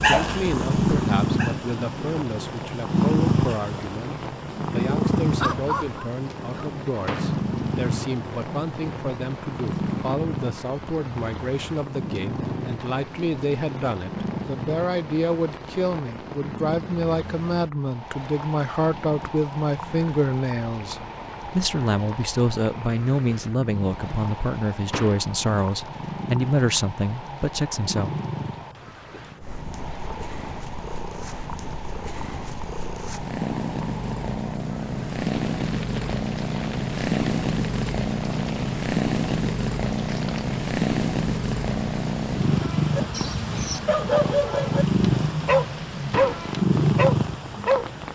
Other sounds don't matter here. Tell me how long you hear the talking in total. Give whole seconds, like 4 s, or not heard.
28 s.